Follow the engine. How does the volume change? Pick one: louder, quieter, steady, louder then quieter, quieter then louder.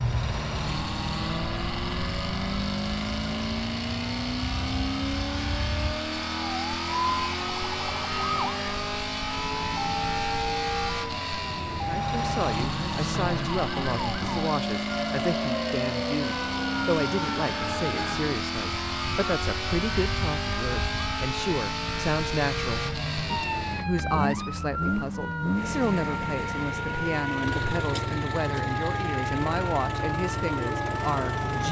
steady.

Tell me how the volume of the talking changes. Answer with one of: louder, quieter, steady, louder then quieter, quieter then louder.
steady.